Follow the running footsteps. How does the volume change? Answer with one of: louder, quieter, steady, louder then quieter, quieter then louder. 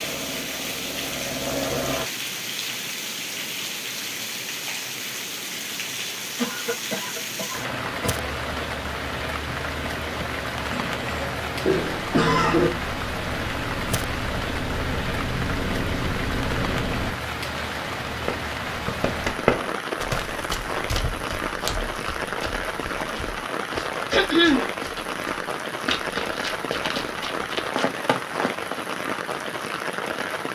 quieter then louder.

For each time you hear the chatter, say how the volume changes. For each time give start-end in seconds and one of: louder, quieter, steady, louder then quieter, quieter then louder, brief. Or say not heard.
not heard.